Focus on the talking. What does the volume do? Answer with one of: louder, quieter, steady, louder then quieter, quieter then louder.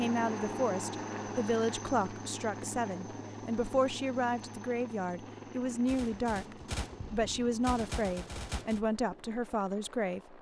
steady.